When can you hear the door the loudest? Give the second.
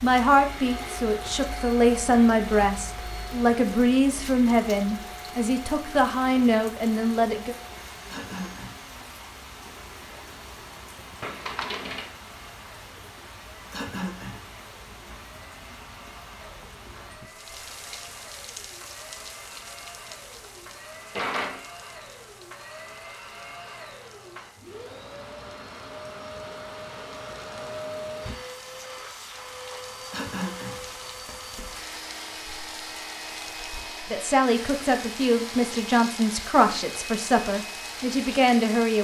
21 s.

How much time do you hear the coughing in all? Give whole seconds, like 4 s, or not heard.
2 s.